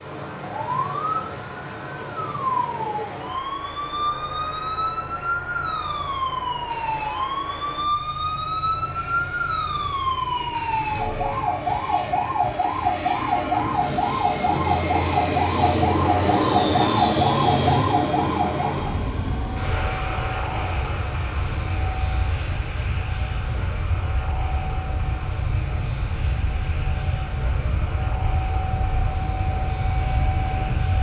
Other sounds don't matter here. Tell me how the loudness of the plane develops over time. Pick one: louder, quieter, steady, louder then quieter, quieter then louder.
louder then quieter.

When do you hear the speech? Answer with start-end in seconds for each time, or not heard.
not heard.